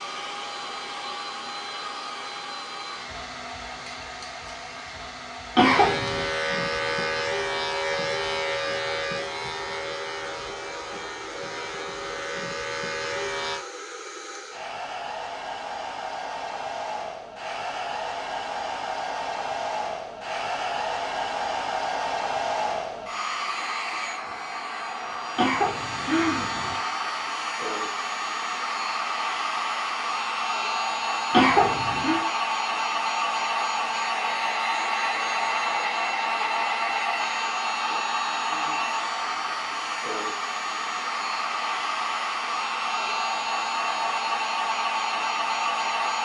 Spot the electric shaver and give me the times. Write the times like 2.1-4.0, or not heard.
5.6-13.7.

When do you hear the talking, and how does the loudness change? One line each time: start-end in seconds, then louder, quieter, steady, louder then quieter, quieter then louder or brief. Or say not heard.
not heard.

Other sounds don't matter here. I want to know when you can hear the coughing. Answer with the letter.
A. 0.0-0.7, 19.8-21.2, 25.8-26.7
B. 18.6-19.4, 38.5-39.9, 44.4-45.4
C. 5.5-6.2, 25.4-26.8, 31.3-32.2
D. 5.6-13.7
C.